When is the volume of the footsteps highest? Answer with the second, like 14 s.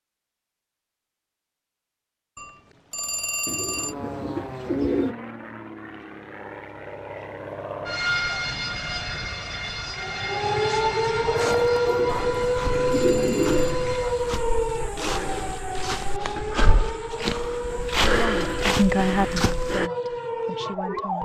18 s.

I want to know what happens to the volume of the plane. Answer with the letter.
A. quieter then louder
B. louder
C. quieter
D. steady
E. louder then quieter
E.